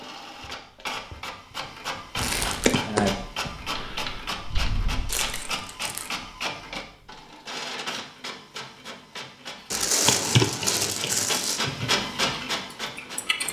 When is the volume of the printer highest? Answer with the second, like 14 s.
12 s.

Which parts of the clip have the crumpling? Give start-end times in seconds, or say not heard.
2.1-2.8, 5.0-6.1, 9.7-11.6.